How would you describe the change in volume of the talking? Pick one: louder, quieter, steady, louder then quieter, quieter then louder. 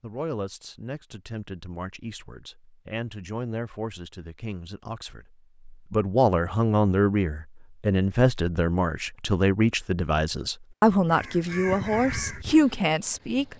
louder.